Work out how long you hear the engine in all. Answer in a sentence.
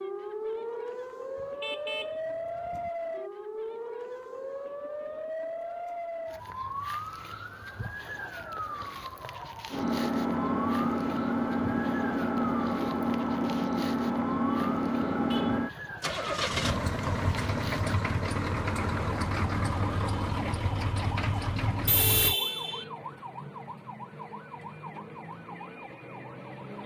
The engine can be heard for 13 seconds in total.